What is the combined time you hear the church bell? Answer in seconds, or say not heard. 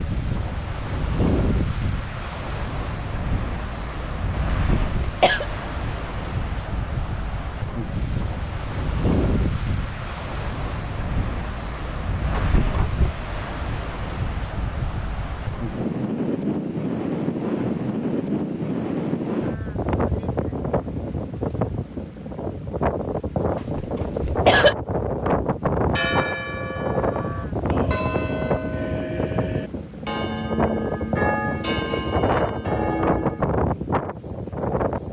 8 s.